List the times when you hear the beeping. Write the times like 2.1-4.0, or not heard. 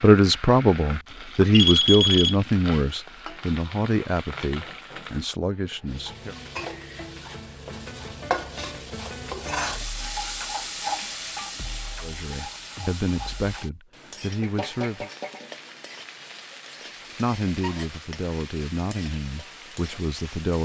1.5-2.4.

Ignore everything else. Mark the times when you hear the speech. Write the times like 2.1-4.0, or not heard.
0.0-6.3, 12.0-15.1, 17.1-20.5.